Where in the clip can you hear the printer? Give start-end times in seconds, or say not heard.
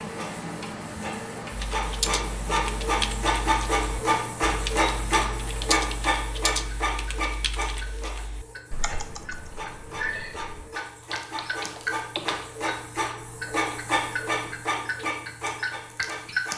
0.0-16.5.